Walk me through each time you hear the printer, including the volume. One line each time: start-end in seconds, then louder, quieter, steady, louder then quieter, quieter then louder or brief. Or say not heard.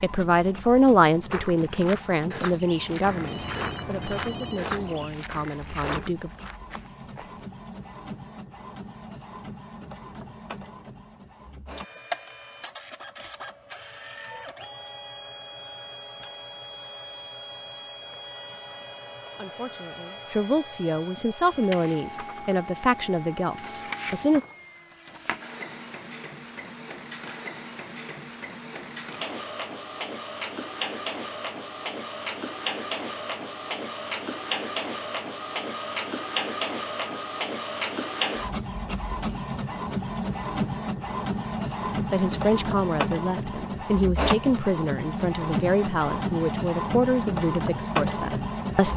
0.0-48.9 louder.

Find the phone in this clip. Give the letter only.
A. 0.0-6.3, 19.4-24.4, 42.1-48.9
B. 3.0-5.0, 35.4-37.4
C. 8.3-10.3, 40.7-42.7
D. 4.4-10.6
B.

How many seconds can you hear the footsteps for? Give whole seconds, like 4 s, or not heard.
6 s.